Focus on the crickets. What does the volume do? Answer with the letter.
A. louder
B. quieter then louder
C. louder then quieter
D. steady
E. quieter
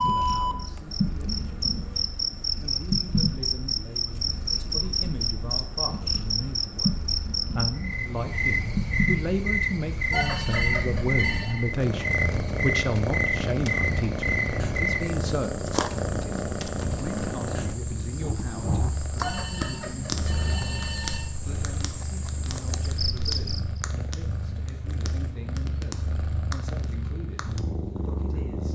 E.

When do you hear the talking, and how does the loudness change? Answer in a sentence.
The talking can be heard from 0.0 to 28.6 s, getting louder then quieter.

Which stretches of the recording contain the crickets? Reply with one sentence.
You can hear the crickets from 0.0 to 23.8 s.